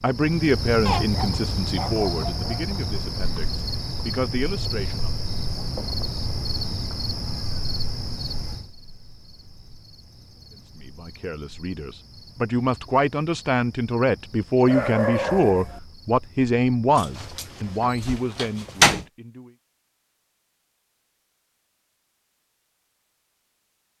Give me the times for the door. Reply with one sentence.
The door can be heard from 16.9 to 19.1 s.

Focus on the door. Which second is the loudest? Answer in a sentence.
The loudest moment of the door is at 19 seconds.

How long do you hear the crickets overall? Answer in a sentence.
The crickets can be heard for 18 seconds in total.